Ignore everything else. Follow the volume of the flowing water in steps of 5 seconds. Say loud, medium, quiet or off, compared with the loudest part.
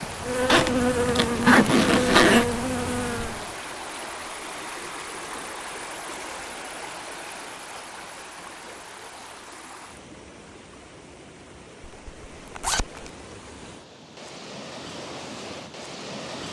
loud, loud, medium, loud.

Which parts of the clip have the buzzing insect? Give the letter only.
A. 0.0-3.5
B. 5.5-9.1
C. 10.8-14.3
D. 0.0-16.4
A.